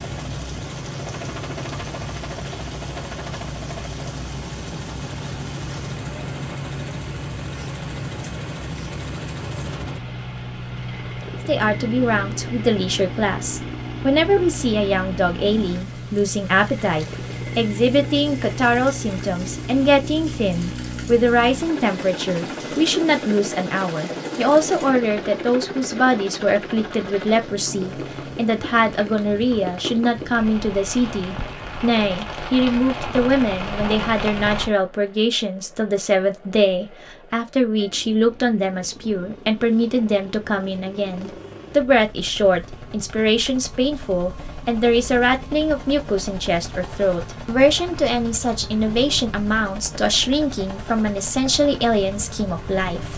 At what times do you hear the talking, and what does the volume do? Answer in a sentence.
The talking can be heard from 11.4 to 53.1 s, at a steady volume.